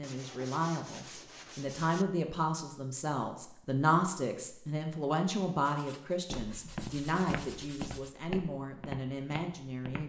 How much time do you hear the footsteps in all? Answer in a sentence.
You can hear the footsteps for 4 seconds altogether.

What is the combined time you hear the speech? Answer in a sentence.
The speech can be heard for 10 seconds in total.